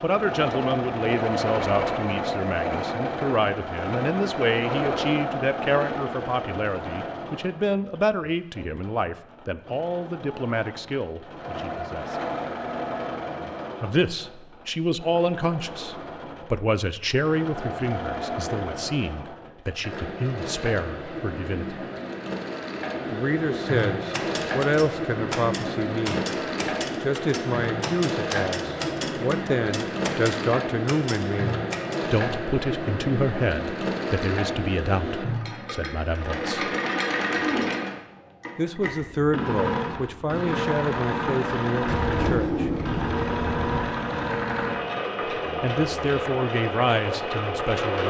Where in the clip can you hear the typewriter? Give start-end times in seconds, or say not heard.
24.1-32.0.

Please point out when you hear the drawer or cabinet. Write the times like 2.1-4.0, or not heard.
41.8-43.8.